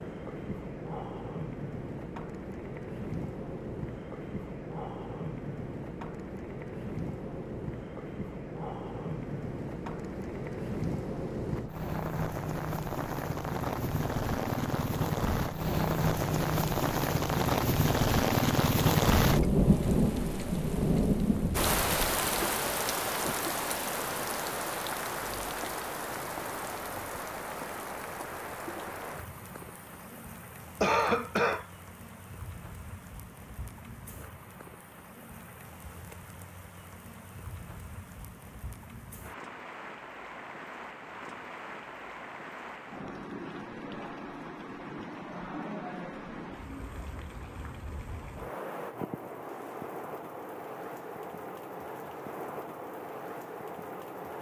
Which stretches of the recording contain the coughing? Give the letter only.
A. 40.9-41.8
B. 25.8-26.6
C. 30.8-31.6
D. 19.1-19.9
C.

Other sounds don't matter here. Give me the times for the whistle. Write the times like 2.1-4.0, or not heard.
not heard.